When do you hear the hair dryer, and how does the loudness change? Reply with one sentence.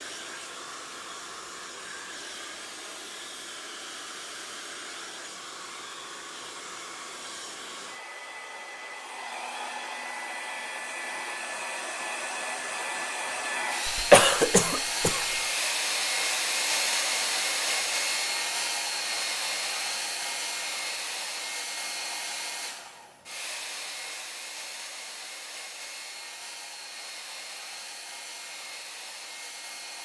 You can hear the hair dryer from 0.0 to 29.9 s, getting louder then quieter.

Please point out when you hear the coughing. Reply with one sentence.
You can hear the coughing from 13.8 to 15.2 s.